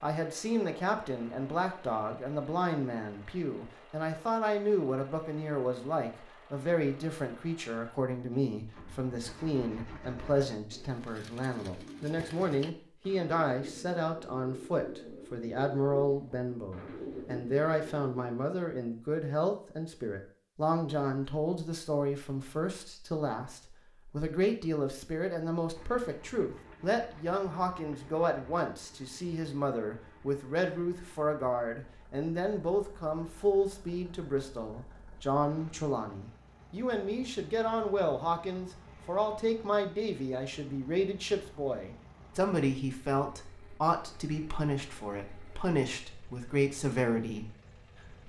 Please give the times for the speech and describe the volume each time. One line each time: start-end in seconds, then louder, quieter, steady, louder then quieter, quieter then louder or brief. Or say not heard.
0.0-47.5 steady.